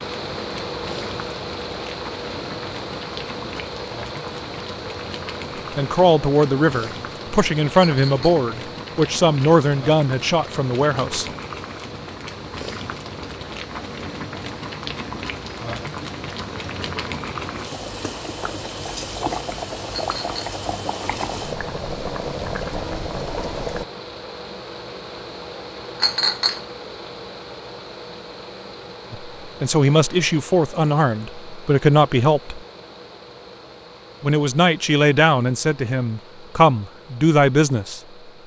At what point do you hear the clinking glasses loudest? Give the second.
26 s.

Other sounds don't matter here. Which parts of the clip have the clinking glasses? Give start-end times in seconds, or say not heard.
7.8-8.4, 19.9-20.4, 26.0-26.6.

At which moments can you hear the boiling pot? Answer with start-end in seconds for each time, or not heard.
0.0-23.9.